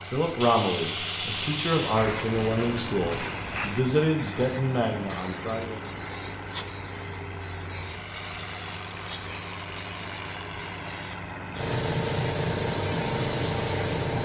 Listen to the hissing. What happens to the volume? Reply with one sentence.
The volume of the hissing goes down, then up.